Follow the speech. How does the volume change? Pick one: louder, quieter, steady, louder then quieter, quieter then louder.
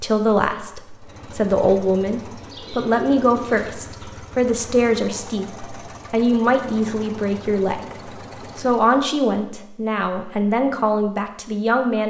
steady.